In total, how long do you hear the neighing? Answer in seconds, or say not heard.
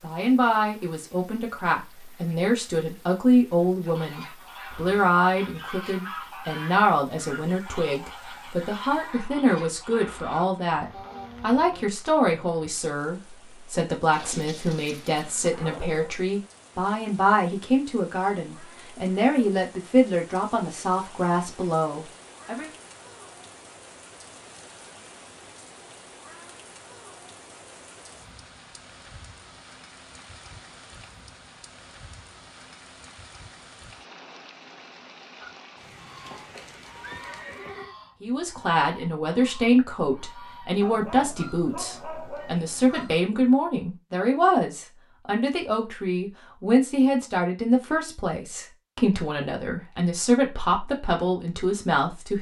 2 s.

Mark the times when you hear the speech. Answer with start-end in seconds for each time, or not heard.
0.0-22.7, 38.2-52.3.